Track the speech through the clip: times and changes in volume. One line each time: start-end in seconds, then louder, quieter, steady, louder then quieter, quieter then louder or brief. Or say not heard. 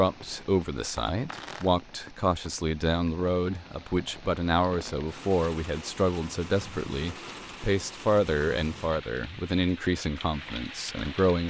0.0-11.4 steady.